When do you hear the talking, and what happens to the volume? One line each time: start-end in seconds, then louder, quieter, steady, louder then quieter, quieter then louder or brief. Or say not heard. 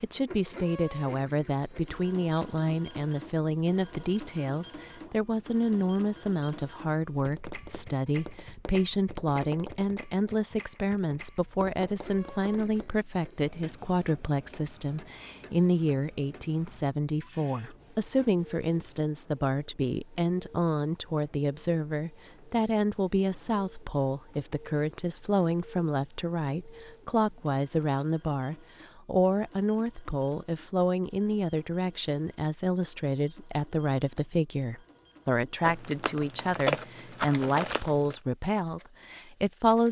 0.0-39.8 steady.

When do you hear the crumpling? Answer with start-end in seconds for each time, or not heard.
35.6-38.1.